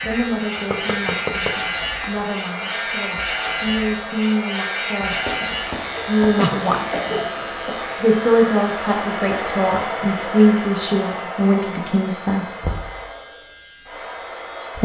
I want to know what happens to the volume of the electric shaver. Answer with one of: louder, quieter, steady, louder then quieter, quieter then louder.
quieter.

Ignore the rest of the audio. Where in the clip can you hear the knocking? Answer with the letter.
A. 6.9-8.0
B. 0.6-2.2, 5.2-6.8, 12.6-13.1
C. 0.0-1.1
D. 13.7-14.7
B.